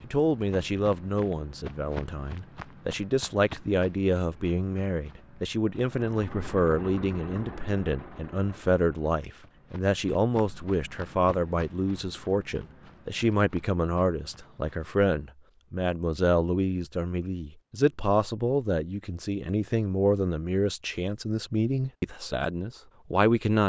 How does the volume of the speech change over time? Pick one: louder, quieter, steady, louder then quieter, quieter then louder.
steady.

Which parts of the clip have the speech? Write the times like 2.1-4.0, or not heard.
0.0-23.6.